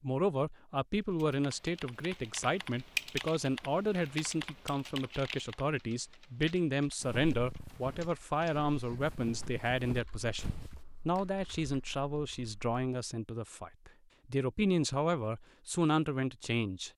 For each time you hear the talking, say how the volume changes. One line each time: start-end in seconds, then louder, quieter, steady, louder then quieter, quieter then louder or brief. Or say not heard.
0.0-16.9 steady.